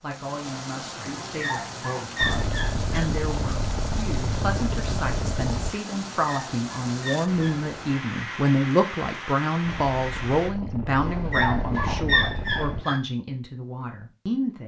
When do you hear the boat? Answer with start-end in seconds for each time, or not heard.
2.1-5.8, 9.6-12.8.